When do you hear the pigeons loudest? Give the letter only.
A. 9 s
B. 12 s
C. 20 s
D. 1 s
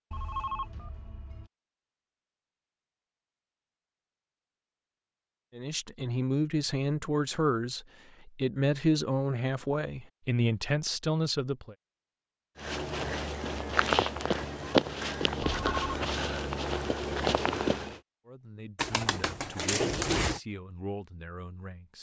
C.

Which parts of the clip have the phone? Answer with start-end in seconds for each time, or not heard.
0.1-1.5, 15.7-16.1.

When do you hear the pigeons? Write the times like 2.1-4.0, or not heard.
18.8-20.4.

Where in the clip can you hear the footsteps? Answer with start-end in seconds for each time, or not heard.
12.6-18.0.